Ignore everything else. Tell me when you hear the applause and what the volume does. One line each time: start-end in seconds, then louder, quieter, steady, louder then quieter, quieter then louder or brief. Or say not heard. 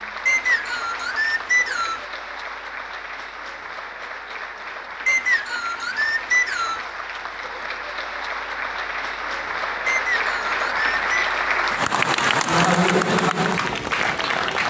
0.0-14.6 louder.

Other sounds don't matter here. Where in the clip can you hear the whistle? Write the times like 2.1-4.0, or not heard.
0.2-2.0, 5.0-6.8, 9.8-11.1.